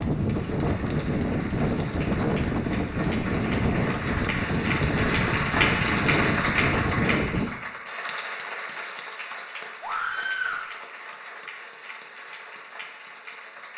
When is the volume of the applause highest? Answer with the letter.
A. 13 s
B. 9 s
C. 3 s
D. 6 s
D.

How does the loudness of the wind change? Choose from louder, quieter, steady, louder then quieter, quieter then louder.
steady.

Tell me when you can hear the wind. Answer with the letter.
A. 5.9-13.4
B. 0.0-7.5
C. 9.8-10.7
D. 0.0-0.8
B.